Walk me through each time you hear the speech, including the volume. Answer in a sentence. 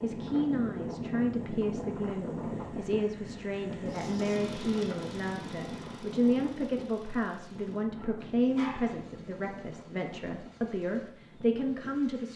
The speech can be heard from 0.0 to 12.3 s, at a steady volume.